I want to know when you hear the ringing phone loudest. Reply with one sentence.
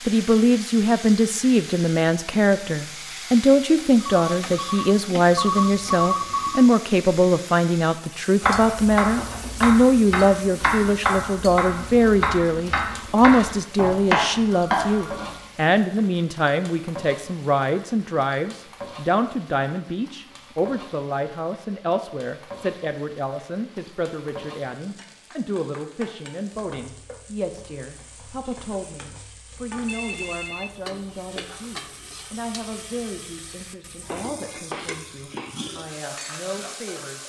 The loudest moment of the ringing phone is at 6 seconds.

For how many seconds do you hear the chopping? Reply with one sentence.
The chopping can be heard for 7 seconds in total.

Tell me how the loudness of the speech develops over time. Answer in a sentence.
The volume of the speech goes down.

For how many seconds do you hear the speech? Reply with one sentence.
The speech can be heard for 37 seconds in total.